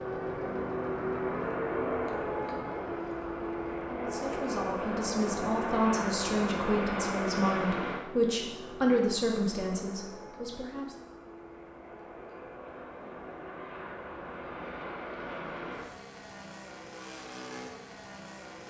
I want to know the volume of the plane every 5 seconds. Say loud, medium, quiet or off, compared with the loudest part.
loud, loud, medium, medium.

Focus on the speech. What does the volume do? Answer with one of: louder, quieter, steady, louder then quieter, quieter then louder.
louder then quieter.